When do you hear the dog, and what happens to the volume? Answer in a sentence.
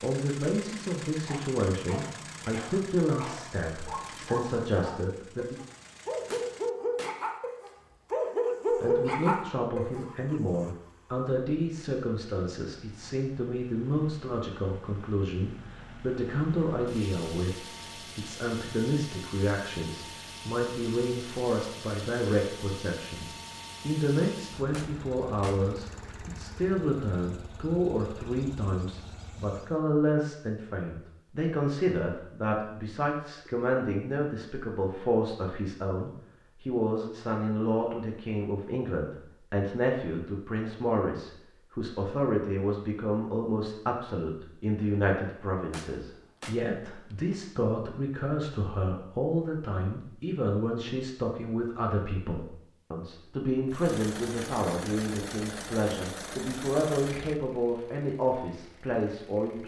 You can hear the dog from 1.1 to 10.1 s, getting louder.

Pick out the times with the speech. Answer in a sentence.
You can hear the speech from 0.0 to 5.5 s and from 8.8 to 59.6 s.